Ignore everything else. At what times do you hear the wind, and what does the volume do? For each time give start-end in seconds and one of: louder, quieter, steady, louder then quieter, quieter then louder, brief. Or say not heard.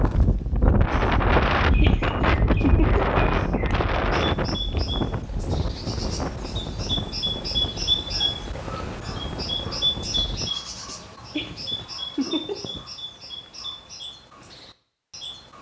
0.0-10.5 quieter.